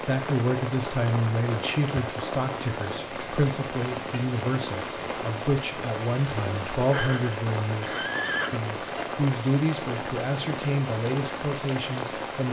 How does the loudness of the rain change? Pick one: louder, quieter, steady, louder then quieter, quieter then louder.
steady.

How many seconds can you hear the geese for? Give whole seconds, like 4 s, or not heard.
not heard.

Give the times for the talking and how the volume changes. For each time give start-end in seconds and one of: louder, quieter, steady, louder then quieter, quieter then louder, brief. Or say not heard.
0.0-12.4 steady.